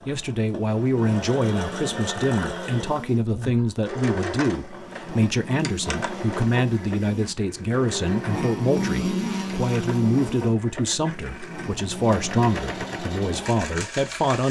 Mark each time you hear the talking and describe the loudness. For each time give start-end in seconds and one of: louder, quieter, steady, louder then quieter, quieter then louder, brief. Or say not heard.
0.1-14.4 steady.